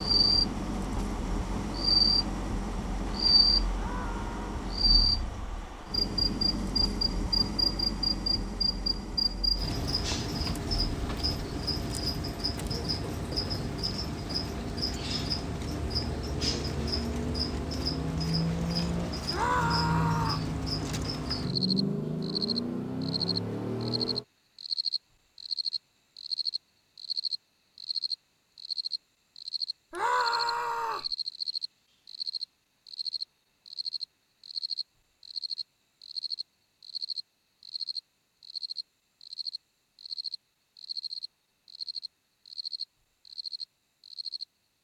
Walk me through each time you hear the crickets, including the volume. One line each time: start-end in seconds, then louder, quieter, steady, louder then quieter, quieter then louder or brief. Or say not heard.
0.0-44.7 quieter.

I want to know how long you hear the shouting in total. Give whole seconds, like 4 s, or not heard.
3 s.